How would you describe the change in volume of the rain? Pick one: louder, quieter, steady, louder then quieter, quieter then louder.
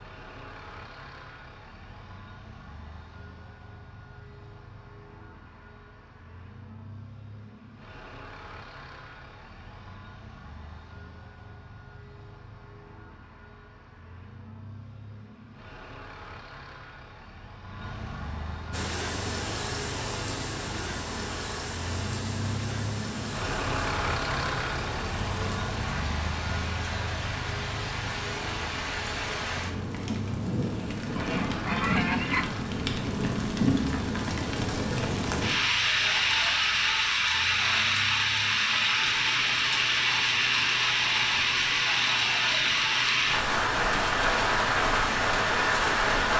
louder.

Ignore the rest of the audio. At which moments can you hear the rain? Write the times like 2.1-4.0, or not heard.
18.7-46.3.